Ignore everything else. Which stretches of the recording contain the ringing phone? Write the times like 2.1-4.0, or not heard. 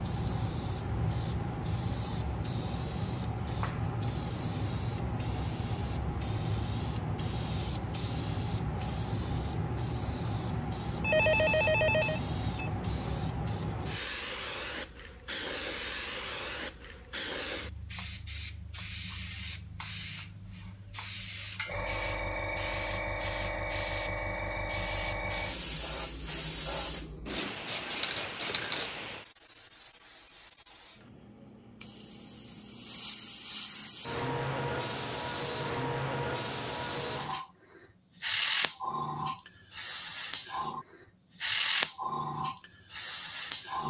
11.0-12.7.